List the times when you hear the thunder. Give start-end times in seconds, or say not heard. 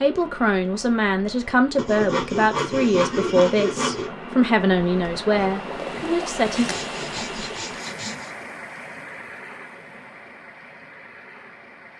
not heard.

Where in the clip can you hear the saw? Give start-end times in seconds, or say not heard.
1.8-4.1, 6.5-8.3.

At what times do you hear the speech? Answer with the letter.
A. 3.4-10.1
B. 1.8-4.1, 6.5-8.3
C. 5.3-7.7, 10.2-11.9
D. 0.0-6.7
D.